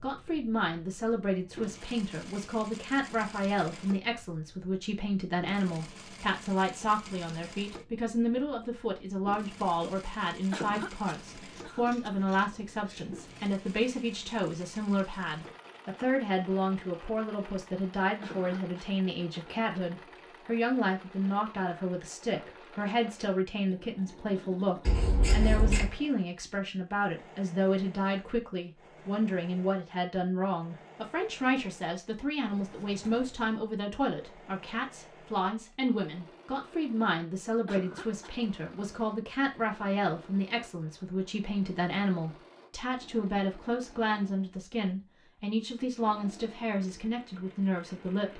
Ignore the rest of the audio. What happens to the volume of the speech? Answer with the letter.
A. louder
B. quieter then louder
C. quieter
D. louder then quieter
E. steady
E.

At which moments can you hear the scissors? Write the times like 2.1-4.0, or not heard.
11.2-13.6, 24.9-25.9, 32.6-33.6.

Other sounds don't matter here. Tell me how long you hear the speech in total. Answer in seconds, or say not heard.
48 s.